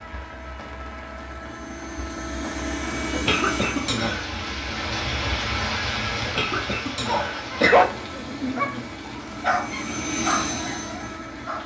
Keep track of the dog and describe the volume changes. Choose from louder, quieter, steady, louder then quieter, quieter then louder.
quieter.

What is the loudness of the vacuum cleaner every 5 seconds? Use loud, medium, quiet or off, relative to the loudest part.
loud, medium, loud.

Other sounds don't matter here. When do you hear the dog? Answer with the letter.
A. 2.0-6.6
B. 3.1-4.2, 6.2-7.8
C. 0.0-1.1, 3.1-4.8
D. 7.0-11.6
D.